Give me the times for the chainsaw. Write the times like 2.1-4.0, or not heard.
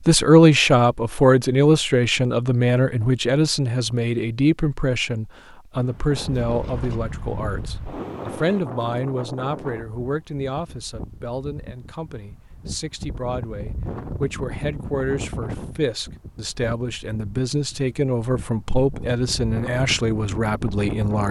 not heard.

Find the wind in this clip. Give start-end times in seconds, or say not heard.
5.7-21.2.